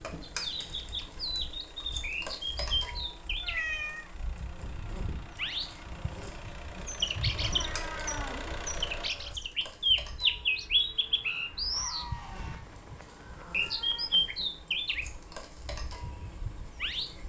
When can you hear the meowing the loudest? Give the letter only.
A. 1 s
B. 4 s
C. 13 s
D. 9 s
B.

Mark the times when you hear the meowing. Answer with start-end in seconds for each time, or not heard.
3.4-4.1, 7.3-9.3, 12.4-14.4.